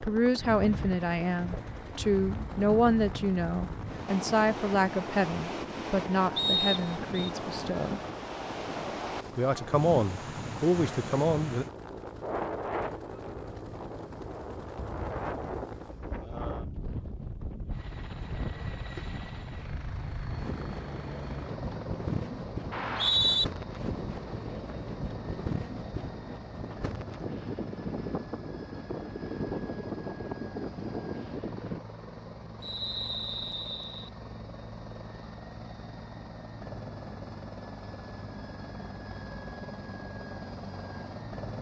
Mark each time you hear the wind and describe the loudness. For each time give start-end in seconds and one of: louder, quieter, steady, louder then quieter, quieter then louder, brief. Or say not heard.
0.0-31.8 steady.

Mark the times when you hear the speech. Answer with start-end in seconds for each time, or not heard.
0.0-8.0, 9.3-11.7.